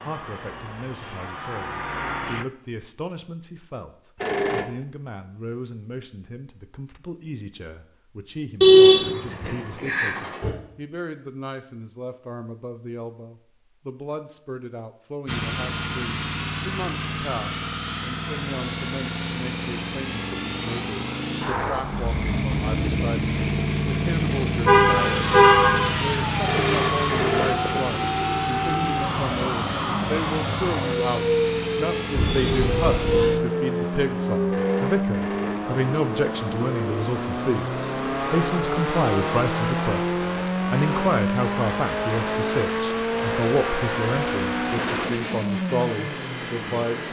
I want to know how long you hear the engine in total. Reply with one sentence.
You can hear the engine for 34 seconds altogether.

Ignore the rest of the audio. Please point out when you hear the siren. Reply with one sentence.
The siren can be heard from 25.4 to 34.8 s.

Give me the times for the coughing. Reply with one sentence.
The coughing can't be heard in this clip.